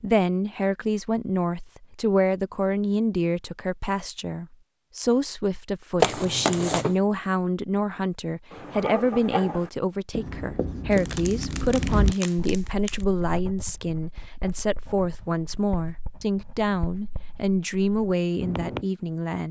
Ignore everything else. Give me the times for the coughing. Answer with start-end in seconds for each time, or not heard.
6.0-7.0.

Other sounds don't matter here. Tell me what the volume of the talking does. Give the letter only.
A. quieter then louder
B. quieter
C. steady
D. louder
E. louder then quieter
C.